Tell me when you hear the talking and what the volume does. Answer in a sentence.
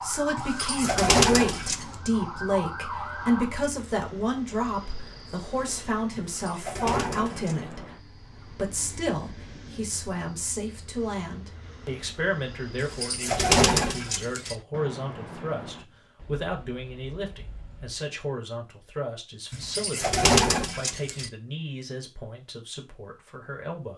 The talking can be heard from 0.0 to 23.9 s, getting quieter.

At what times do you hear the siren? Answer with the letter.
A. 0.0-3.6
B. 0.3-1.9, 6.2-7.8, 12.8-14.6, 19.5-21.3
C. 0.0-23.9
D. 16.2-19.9
A.